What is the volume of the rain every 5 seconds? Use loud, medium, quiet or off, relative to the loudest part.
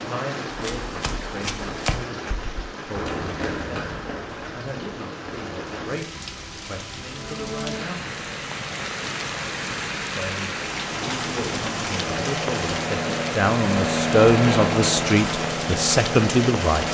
medium, loud, loud, loud.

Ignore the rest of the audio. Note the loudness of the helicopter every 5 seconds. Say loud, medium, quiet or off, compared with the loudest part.
off, off, loud, loud.